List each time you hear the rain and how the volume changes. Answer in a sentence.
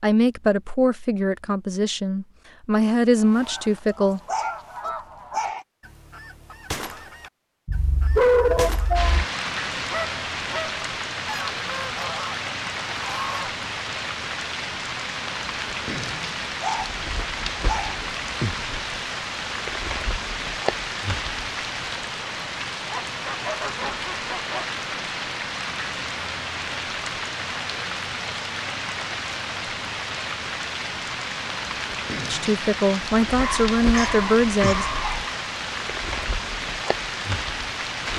The rain can be heard from 8.9 to 38.1 s, at a steady volume.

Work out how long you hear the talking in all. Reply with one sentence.
You can hear the talking for 7 seconds altogether.